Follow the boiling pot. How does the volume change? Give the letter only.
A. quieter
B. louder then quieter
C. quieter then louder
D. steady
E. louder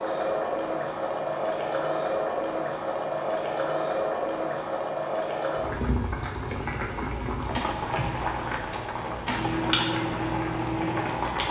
D.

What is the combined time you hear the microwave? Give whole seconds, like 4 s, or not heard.
2 s.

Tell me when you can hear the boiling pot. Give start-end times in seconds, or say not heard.
0.0-11.4.